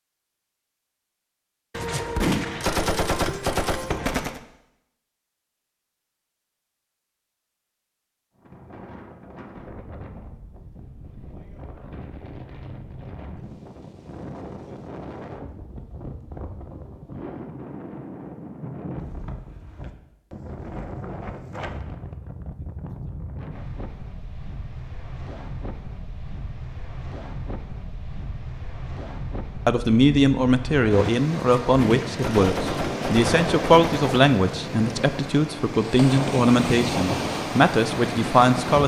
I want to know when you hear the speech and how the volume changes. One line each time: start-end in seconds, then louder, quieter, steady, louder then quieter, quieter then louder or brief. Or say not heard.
29.6-38.8 steady.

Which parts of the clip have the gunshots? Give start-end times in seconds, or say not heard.
1.7-4.4, 31.3-34.4.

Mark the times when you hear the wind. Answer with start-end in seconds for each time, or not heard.
8.3-38.8.